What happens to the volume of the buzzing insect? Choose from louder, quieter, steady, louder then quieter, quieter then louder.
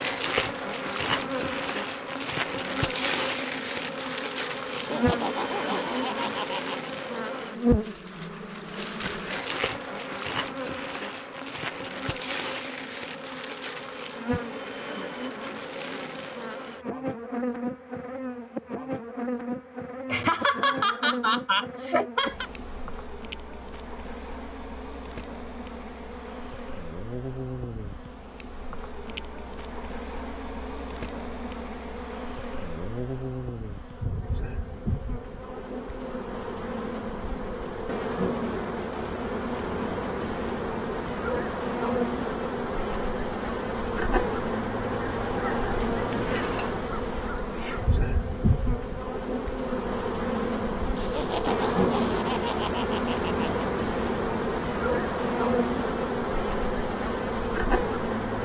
quieter then louder.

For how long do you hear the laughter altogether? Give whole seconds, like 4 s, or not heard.
7 s.